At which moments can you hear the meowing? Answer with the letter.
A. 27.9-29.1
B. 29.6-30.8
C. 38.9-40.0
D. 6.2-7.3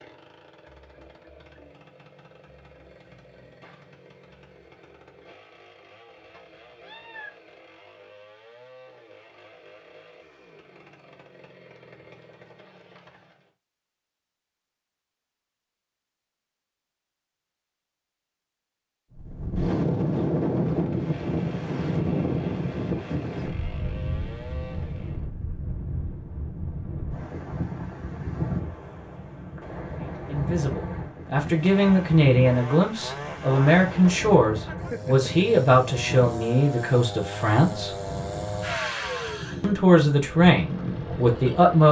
D.